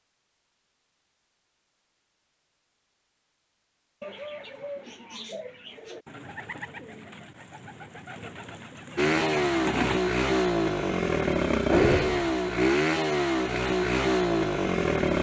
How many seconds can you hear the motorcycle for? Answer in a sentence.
The motorcycle can be heard for 6 seconds in total.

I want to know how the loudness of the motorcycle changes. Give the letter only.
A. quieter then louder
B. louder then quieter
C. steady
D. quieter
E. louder
C.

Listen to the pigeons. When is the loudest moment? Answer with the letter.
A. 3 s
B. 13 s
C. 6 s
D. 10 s
D.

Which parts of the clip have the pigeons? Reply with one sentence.
The pigeons can be heard from 4.0 to 10.0 s.